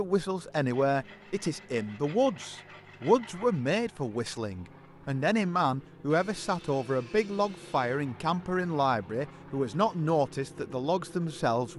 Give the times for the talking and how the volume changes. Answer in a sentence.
The talking can be heard from 0.0 to 11.7 s, at a steady volume.